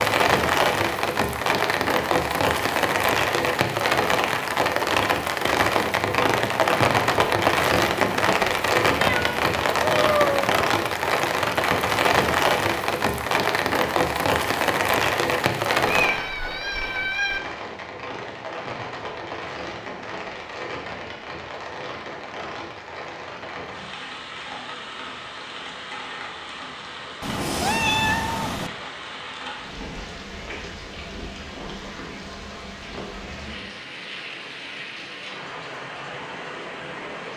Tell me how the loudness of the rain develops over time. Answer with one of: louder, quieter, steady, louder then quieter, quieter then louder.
quieter.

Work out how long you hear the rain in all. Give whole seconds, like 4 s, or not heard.
37 s.